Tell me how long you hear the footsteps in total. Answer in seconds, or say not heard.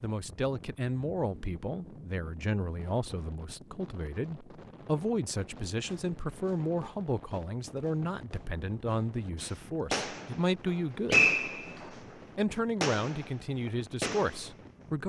not heard.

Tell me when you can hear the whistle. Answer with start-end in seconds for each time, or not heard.
11.1-11.8.